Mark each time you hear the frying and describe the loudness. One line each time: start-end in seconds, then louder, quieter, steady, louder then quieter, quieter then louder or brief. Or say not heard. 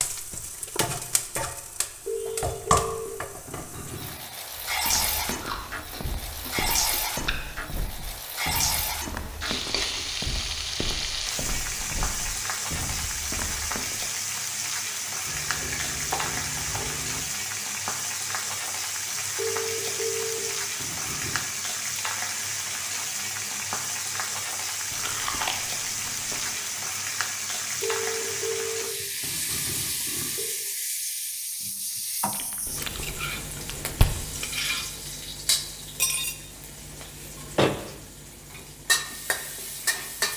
0.0-40.3 steady.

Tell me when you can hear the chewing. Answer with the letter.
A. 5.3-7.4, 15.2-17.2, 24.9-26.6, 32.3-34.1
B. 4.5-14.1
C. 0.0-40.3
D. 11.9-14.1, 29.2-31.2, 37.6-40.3
A.